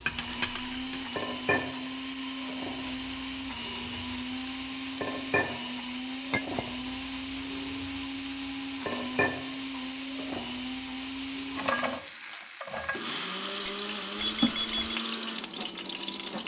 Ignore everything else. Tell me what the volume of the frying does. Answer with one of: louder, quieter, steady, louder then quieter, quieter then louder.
steady.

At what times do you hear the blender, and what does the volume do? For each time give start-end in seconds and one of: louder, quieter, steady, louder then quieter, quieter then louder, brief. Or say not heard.
0.0-16.4 steady.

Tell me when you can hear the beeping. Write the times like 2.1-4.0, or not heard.
14.2-15.0.